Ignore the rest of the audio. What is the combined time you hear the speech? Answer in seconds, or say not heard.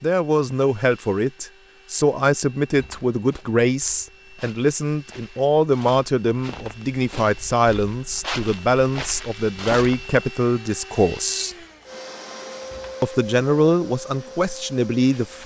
14 s.